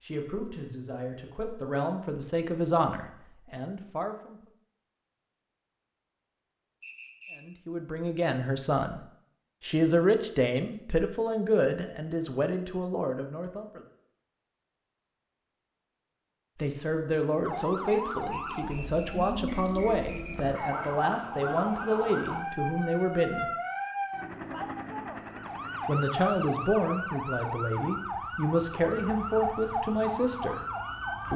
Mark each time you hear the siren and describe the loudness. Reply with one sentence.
You can hear the siren from 17.4 to 31.3 s, at a steady volume.